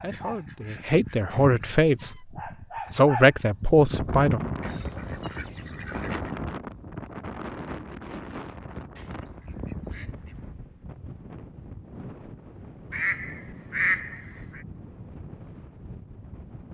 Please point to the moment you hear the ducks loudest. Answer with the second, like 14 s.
14 s.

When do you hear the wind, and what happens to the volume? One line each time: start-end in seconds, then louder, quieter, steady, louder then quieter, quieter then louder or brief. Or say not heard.
3.9-16.6 quieter.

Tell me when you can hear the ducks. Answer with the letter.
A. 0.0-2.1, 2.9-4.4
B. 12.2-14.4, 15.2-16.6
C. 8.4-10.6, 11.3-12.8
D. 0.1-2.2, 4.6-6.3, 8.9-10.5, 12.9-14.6
D.